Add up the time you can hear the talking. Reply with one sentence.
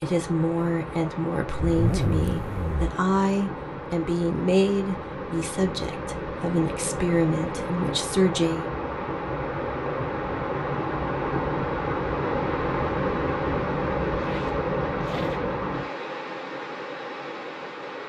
The talking can be heard for 9 seconds in total.